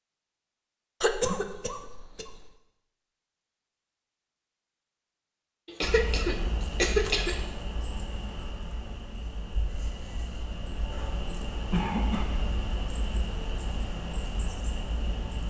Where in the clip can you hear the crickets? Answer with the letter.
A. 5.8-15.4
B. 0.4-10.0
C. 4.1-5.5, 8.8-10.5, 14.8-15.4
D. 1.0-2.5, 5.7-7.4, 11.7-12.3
A.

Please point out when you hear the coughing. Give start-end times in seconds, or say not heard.
1.0-2.5, 5.7-7.4, 11.7-12.3.